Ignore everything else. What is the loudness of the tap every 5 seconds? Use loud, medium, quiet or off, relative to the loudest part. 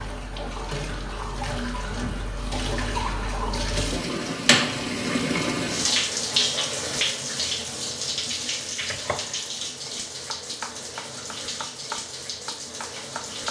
loud, loud, medium.